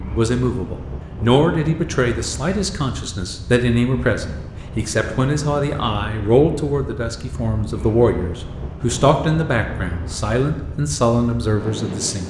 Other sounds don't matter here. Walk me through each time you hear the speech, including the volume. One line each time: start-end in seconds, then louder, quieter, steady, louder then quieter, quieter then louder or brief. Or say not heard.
0.0-12.2 steady.